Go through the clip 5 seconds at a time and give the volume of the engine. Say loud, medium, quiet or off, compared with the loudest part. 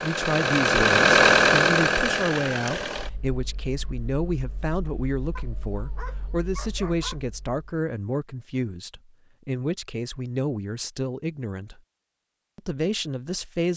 loud, quiet, off.